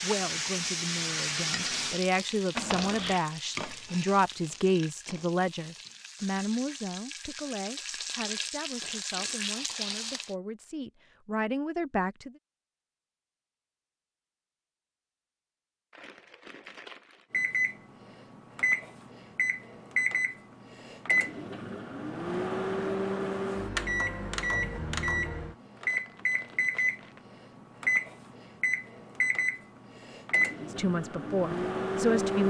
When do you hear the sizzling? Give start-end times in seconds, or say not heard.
0.0-10.3.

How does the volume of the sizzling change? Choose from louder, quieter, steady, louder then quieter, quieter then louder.
quieter then louder.